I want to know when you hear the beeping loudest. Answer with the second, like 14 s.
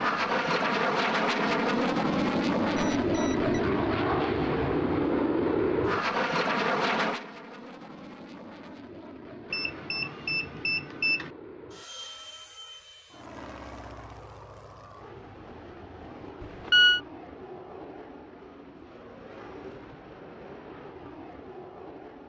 17 s.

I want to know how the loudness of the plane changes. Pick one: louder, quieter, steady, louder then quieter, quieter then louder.
quieter.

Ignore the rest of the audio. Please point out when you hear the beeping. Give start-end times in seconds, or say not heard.
2.8-3.6, 9.5-11.3, 16.4-17.0.